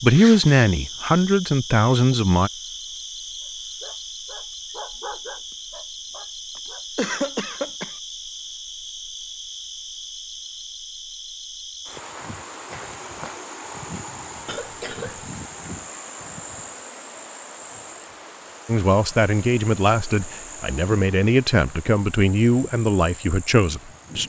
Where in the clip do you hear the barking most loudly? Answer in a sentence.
The volume of the barking peaks at 5 seconds.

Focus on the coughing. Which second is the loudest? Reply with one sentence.
The volume of the coughing peaks at 7 seconds.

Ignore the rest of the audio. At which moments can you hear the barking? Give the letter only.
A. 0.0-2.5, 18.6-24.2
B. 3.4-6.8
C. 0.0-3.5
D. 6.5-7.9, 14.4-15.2
B.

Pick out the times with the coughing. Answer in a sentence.
You can hear the coughing from 6.5 to 7.9 s and from 14.4 to 15.2 s.